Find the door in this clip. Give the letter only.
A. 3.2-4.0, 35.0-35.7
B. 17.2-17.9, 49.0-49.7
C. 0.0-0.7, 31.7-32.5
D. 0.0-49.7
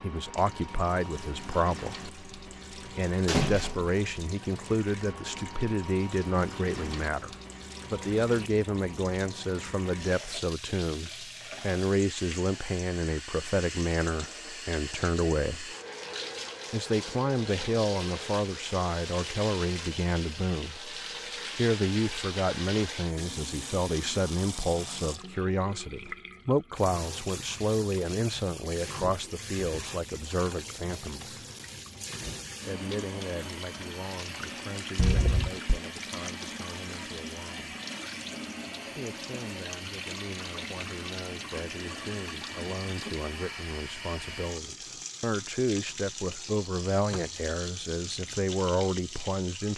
A.